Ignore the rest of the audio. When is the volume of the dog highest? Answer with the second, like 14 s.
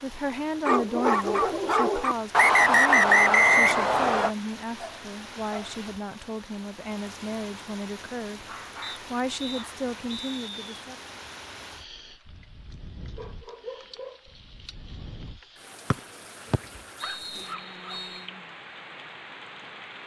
1 s.